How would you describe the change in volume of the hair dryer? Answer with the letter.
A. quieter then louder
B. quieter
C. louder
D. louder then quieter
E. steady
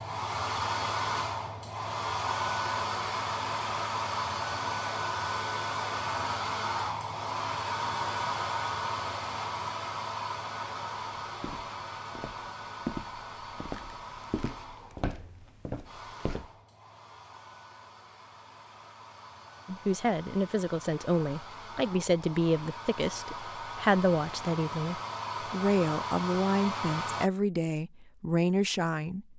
A.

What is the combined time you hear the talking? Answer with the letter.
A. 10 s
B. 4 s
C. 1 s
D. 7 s
A.